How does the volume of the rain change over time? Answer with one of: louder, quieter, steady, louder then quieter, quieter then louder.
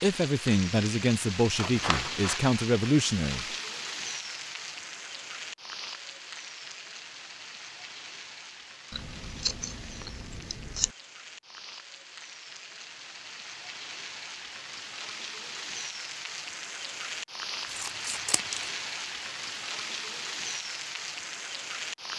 quieter then louder.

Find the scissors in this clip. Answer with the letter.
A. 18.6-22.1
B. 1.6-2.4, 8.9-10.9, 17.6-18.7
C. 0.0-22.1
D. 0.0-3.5
B.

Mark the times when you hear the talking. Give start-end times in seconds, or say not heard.
0.0-3.5.